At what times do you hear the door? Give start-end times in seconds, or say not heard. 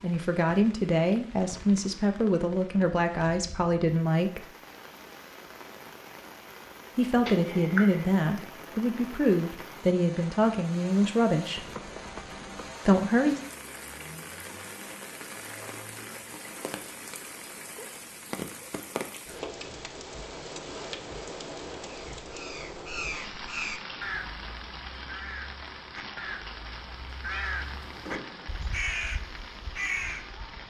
not heard.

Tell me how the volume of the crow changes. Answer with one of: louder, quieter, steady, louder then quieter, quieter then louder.
quieter then louder.